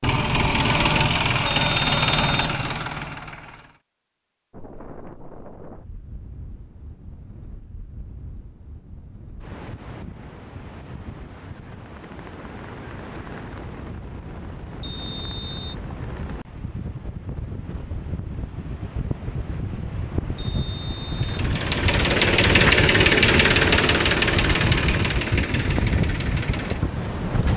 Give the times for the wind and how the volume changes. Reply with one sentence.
You can hear the wind from 4.5 to 27.5 s, getting louder.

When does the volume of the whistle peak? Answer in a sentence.
The loudest moment of the whistle is at 2 seconds.